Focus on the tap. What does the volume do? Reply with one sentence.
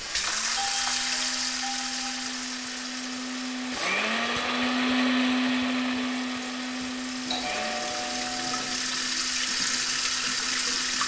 The loudness of the tap goes down, then up.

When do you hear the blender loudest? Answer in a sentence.
The loudest moment of the blender is at 5 seconds.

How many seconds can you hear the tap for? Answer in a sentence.
You can hear the tap for 11 seconds altogether.